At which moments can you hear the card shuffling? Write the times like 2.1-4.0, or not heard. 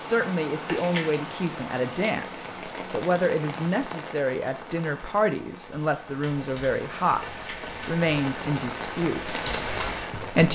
0.7-1.1, 7.2-8.0.